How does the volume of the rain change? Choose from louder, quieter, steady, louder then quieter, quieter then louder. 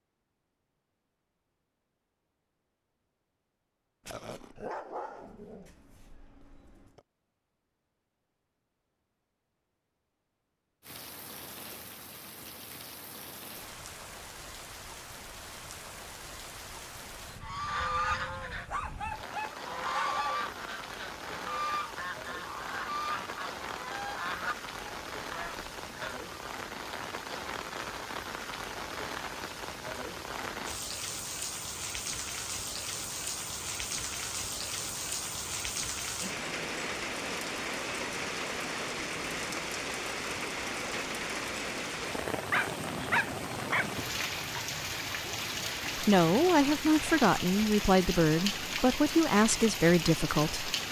louder.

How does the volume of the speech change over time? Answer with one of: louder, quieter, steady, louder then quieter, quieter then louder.
steady.